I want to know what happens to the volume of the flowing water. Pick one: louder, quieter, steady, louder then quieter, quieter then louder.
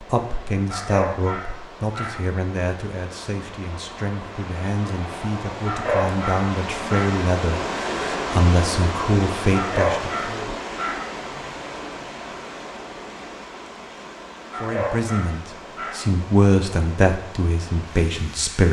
louder then quieter.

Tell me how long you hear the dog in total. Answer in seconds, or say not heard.
6 s.